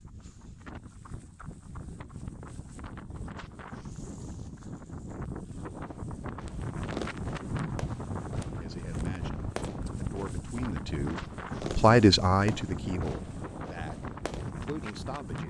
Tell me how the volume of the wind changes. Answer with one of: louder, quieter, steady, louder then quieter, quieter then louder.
louder.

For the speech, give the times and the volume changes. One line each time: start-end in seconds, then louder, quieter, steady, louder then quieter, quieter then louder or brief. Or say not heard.
8.4-15.4 louder then quieter.